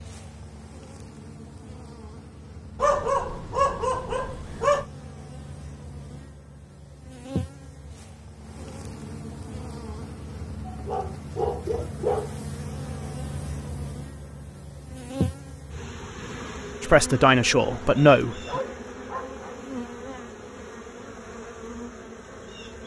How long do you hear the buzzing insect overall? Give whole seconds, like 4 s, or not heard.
23 s.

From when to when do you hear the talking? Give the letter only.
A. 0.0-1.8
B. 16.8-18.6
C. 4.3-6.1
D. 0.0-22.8
B.